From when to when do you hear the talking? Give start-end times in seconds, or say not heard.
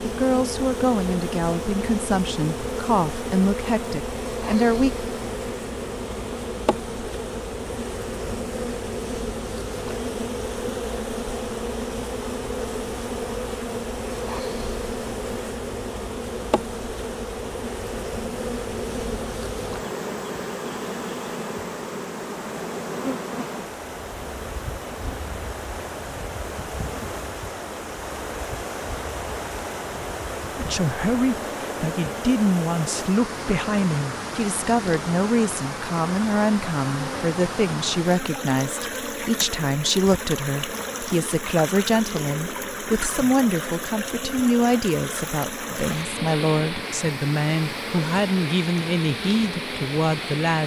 0.0-5.0, 30.6-50.6.